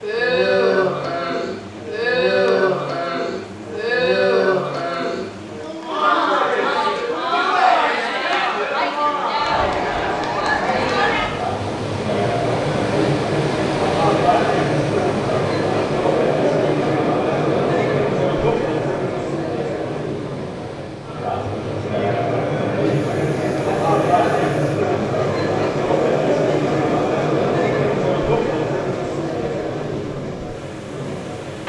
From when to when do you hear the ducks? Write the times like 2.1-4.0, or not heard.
not heard.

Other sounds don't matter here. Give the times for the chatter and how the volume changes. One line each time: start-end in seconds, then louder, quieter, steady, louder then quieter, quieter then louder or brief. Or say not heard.
0.0-31.6 steady.